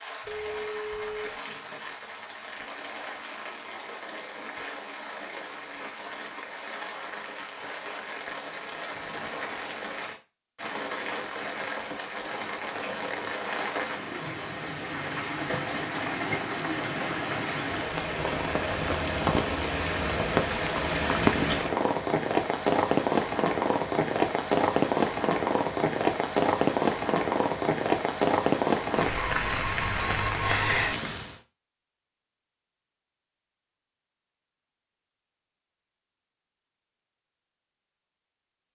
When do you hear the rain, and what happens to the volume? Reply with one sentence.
The rain can be heard from 0.0 to 31.4 s, getting louder.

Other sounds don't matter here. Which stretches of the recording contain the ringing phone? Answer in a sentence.
You can hear the ringing phone from 0.2 to 1.4 s.